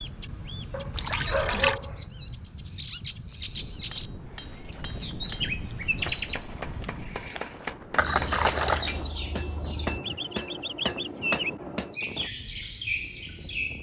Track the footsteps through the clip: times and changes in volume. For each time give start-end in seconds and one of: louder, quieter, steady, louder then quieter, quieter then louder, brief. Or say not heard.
not heard.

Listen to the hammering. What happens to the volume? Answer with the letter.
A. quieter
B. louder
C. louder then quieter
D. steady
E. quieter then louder
B.